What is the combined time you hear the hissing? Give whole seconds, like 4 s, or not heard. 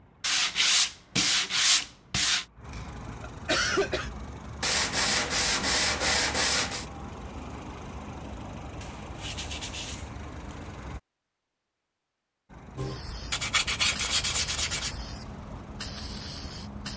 4 s.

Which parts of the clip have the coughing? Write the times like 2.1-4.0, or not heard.
2.7-4.1.